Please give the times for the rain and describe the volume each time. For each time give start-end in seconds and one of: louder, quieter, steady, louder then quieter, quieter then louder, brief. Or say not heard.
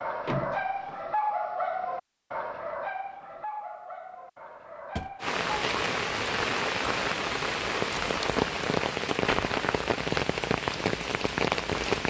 5.2-12.0 steady.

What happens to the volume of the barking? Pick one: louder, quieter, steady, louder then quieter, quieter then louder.
quieter.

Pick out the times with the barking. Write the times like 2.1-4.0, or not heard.
0.0-5.4.